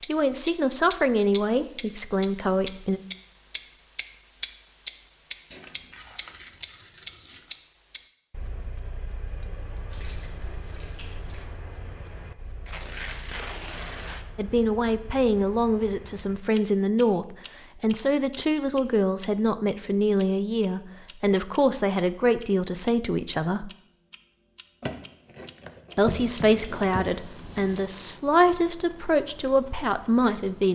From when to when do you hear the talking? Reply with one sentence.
The talking can be heard from 0.1 to 3.0 s, from 14.3 to 23.7 s and from 25.9 to 30.6 s.